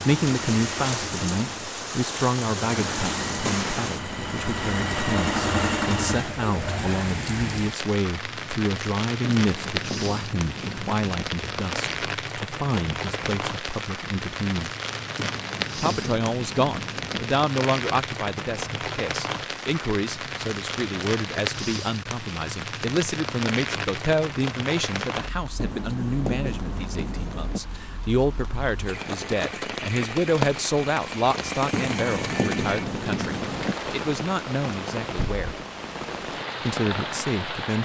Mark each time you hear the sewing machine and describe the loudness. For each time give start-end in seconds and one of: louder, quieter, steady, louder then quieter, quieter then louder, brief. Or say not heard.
0.0-7.2 louder.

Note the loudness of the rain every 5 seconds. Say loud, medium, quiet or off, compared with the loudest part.
loud, loud, loud, loud, loud, medium, loud, loud.